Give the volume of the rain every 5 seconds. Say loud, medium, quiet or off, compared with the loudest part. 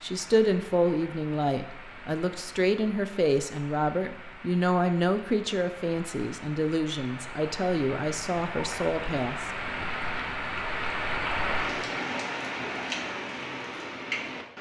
quiet, medium, loud.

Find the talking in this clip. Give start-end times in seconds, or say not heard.
0.0-9.5.